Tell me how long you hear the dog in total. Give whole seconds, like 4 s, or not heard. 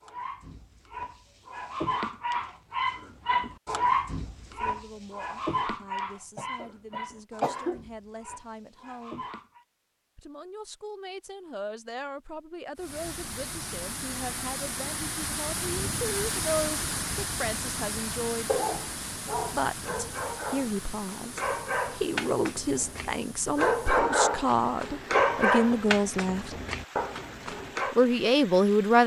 19 s.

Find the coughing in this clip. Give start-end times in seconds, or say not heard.
6.3-7.8, 25.1-25.8.